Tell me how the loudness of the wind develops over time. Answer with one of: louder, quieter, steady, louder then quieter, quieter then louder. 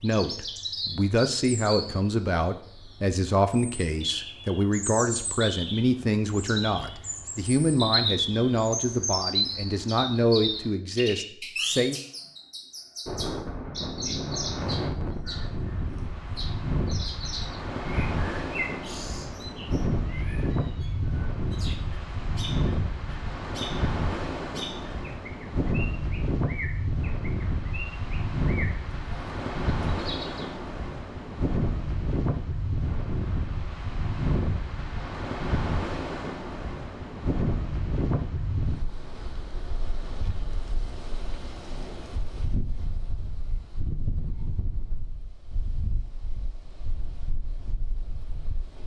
quieter.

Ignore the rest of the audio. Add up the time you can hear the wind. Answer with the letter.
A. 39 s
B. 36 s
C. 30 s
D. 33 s
B.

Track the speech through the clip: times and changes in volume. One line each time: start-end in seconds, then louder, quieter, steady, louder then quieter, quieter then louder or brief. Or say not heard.
0.0-12.0 steady.